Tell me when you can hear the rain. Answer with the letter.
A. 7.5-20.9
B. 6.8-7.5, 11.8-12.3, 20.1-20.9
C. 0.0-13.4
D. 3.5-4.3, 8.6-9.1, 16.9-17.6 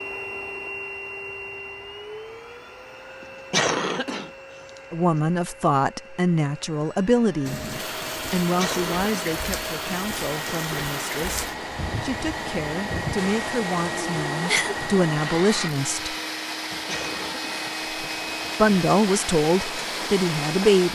A.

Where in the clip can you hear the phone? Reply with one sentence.
The phone can't be heard in this clip.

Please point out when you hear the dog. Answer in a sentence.
The dog can't be heard in this clip.